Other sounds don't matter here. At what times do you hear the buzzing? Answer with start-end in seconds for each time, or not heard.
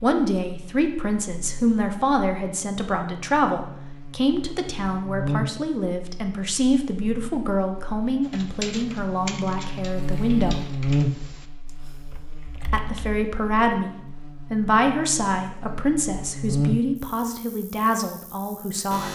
0.0-19.1.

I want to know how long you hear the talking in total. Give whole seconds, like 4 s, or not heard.
17 s.